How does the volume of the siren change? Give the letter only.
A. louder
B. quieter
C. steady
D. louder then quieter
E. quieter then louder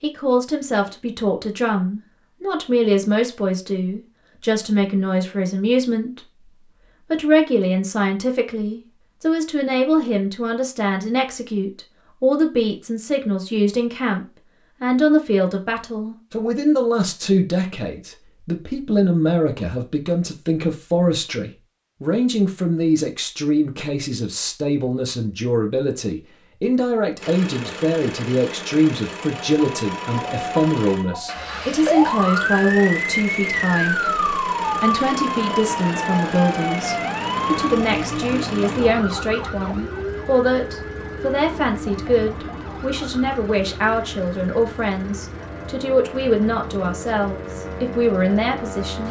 B.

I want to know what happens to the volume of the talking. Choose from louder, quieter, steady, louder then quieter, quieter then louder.
steady.